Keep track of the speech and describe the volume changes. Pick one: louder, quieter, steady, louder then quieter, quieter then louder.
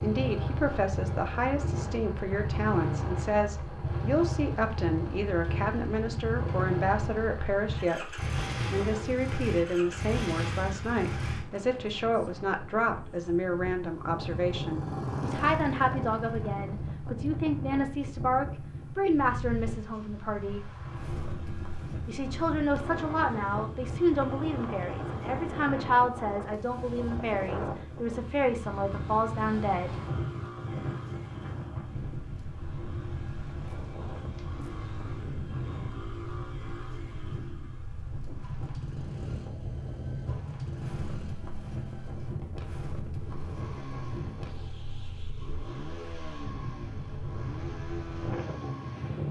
steady.